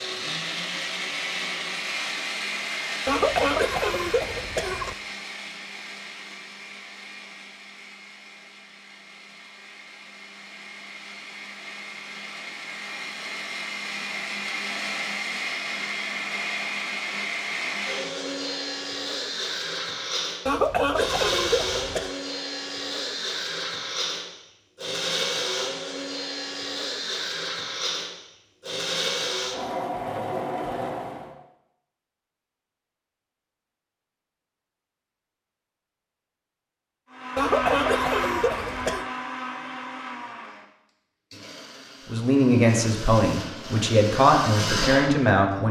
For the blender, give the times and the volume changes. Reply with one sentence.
You can hear the blender from 0.0 to 31.4 s, getting quieter then louder; and from 37.1 to 45.6 s, getting quieter then louder.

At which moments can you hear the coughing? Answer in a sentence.
You can hear the coughing from 3.0 to 5.0 s, from 20.4 to 22.1 s and from 37.4 to 39.0 s.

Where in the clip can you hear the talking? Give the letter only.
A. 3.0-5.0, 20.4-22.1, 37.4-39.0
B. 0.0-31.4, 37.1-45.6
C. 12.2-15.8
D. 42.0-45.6
D.